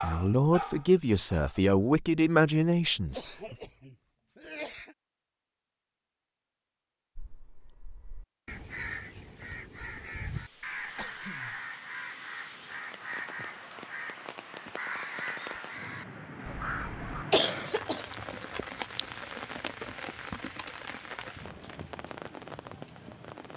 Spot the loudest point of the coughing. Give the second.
17 s.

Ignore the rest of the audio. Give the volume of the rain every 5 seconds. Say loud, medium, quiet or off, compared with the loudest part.
off, off, medium, loud, loud.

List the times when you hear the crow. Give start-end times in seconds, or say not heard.
7.2-17.2.